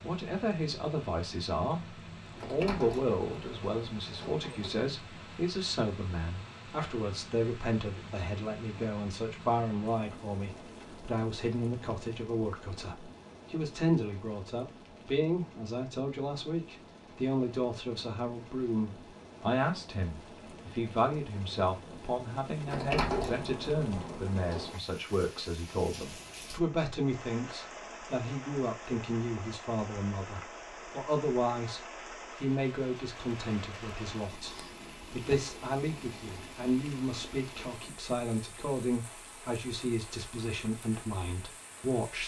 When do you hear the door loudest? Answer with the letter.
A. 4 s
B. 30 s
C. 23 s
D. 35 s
C.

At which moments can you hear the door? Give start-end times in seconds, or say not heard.
2.4-4.8, 22.6-24.8, 34.5-35.4.